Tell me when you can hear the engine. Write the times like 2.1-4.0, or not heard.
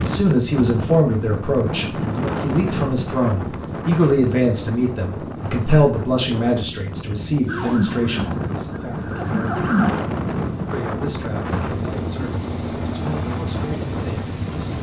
11.4-14.7.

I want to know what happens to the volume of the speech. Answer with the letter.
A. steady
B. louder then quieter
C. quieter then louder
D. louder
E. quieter
E.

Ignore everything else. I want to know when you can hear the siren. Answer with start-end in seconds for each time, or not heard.
7.5-10.0.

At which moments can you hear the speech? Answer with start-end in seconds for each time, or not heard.
0.0-9.6, 10.7-14.7.